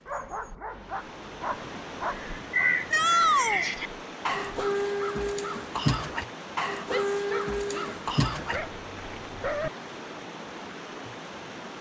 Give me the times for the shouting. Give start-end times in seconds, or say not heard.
2.9-3.6, 6.9-8.0.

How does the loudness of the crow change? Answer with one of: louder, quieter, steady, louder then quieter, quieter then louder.
steady.